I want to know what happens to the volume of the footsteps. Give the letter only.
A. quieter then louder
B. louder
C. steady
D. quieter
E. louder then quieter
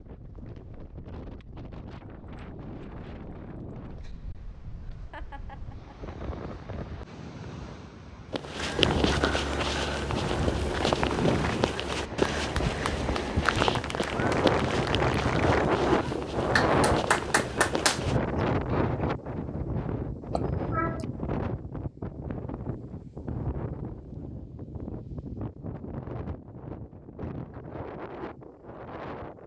D.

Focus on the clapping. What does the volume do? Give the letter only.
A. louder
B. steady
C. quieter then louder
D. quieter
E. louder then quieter
A.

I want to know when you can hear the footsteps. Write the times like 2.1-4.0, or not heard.
8.3-18.2.